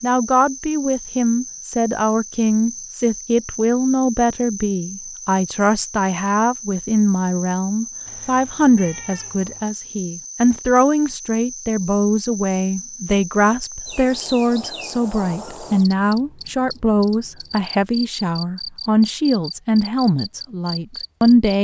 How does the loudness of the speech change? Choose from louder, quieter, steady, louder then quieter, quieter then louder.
steady.